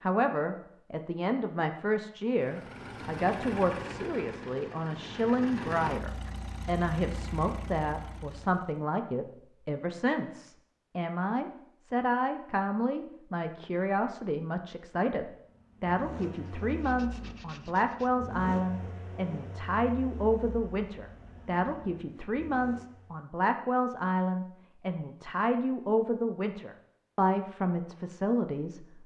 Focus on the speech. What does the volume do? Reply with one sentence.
The loudness of the speech stays about the same.